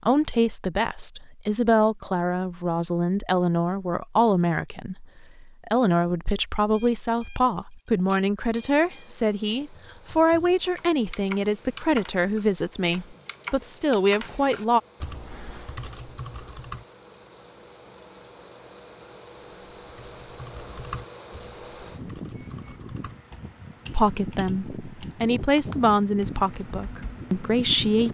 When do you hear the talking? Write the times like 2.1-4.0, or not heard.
0.0-14.8, 23.9-28.1.